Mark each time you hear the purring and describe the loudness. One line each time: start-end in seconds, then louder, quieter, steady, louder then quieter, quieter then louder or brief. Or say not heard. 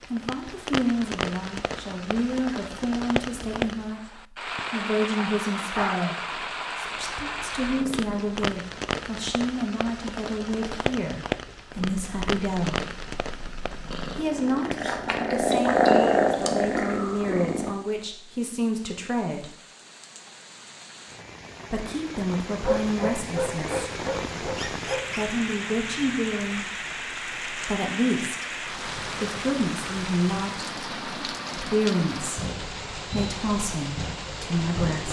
7.0-8.3 brief
11.7-17.8 louder then quieter.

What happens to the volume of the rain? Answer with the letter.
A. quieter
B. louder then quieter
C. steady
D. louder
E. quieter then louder
E.